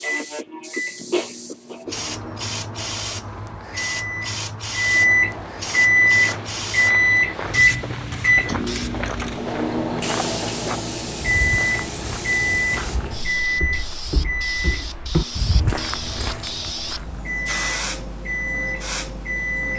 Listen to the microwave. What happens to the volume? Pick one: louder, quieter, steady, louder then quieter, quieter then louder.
louder then quieter.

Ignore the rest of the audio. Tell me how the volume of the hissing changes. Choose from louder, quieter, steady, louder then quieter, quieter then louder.
steady.